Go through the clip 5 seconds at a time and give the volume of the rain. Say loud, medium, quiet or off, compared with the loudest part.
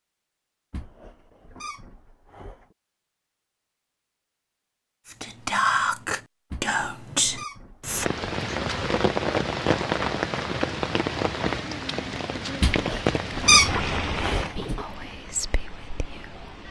off, loud, loud, quiet.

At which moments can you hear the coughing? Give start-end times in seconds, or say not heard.
not heard.